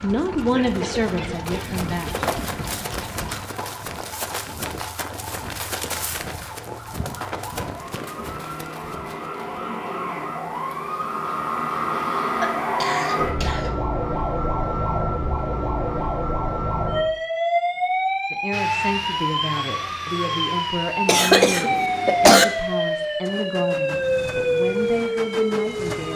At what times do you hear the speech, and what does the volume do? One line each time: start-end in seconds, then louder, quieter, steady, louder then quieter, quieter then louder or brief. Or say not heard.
0.0-2.1 brief
18.3-26.1 steady.